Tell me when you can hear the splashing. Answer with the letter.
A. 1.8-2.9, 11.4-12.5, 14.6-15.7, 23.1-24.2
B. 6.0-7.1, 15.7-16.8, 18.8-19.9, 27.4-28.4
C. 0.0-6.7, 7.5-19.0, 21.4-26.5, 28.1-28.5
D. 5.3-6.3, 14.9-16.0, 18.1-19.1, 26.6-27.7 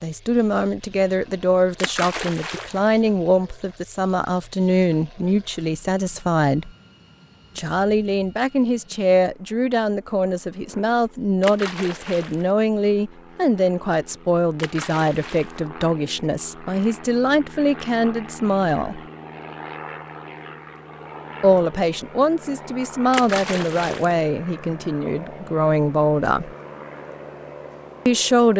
A.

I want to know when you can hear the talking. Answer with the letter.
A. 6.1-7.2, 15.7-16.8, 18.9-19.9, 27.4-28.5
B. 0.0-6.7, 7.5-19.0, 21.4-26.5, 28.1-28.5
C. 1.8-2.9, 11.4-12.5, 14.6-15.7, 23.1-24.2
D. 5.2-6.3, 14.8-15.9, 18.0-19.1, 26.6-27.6
B.